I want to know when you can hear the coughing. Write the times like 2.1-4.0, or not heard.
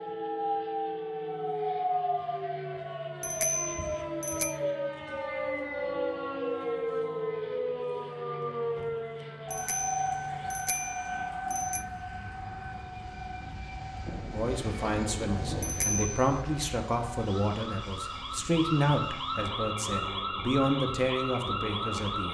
not heard.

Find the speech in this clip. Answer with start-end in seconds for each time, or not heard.
14.3-22.2.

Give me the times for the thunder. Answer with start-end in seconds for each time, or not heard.
14.1-16.1.